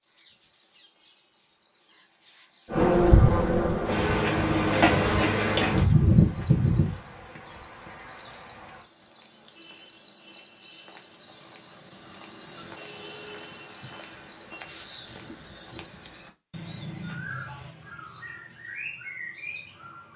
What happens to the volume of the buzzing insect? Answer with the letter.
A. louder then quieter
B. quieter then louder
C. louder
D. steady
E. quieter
E.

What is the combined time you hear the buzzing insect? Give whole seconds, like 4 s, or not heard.
6 s.